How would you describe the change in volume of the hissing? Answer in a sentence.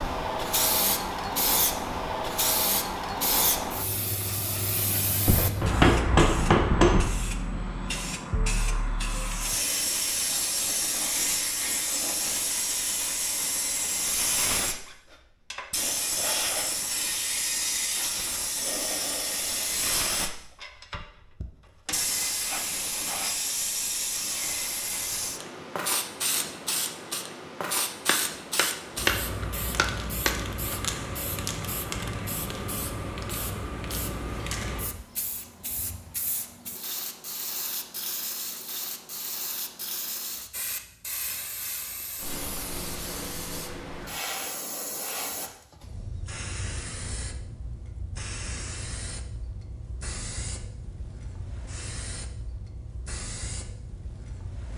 The volume of the hissing goes down.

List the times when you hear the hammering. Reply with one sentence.
You can hear the hammering from 5.2 to 7.2 s and from 28.1 to 30.4 s.